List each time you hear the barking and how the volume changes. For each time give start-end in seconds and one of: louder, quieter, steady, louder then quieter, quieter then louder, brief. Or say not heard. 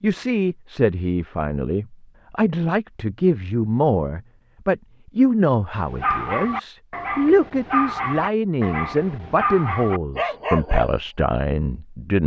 5.8-10.9 steady.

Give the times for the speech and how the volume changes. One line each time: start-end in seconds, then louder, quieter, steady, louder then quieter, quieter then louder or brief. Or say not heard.
0.0-12.2 steady.